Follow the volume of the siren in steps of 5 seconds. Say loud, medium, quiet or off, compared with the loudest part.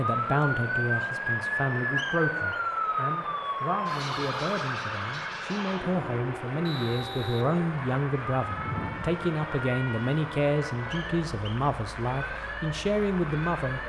loud, medium, medium.